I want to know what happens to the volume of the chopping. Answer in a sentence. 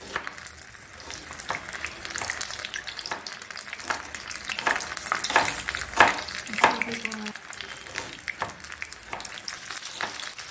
The volume of the chopping goes up, then down.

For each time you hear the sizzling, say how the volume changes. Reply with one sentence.
You can hear the sizzling from 0.0 to 10.4 s, getting louder then quieter.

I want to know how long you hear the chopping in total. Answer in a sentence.
You can hear the chopping for 10 seconds altogether.